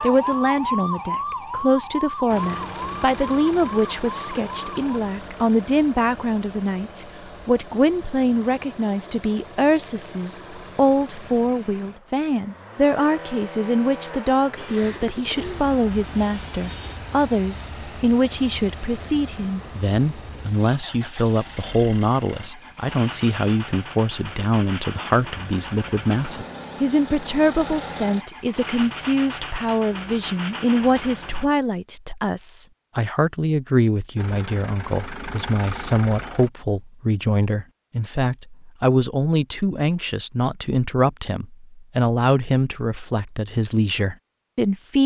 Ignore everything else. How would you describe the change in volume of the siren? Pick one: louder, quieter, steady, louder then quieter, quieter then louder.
quieter.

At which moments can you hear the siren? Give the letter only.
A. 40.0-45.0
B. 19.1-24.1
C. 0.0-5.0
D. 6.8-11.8
C.